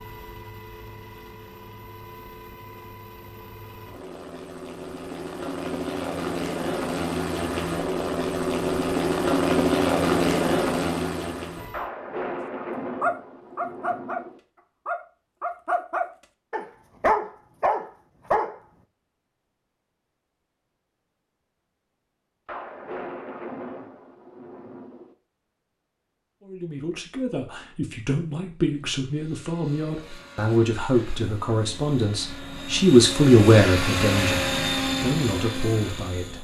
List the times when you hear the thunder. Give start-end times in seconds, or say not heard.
11.7-14.4, 22.4-25.1.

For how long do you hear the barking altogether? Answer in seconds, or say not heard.
5 s.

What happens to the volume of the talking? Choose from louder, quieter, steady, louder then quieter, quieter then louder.
louder then quieter.